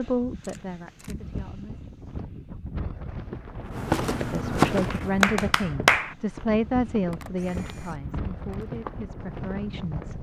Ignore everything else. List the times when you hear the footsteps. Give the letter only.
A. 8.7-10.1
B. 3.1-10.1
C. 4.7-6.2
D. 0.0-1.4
B.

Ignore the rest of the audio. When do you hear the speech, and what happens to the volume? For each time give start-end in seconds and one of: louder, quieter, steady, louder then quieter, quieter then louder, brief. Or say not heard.
0.0-1.9 brief
4.2-10.1 quieter.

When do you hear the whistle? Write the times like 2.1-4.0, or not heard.
not heard.